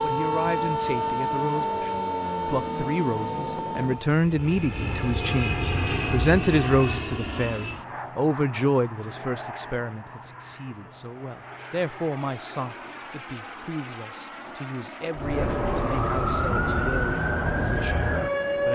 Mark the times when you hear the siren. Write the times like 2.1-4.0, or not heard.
0.0-4.1, 15.2-18.6.